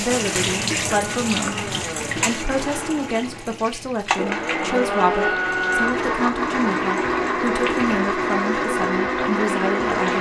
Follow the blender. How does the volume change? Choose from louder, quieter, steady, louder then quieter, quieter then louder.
louder.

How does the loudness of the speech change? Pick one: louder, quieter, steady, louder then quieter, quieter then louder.
steady.